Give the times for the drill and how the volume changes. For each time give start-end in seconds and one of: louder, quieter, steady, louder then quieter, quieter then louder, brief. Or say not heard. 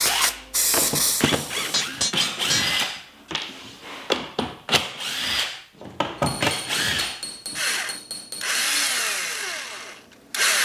0.0-10.6 steady.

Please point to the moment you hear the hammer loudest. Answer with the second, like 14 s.
2 s.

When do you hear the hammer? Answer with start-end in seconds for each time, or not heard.
1.7-2.9, 6.2-9.0.